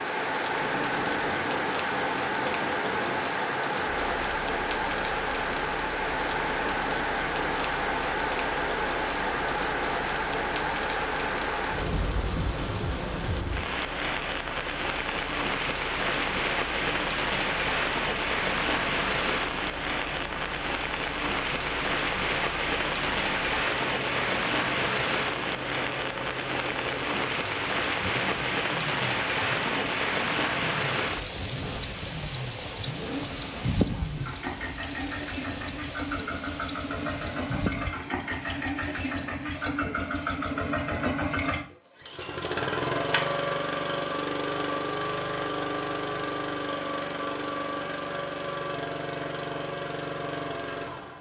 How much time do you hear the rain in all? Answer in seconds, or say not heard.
38 s.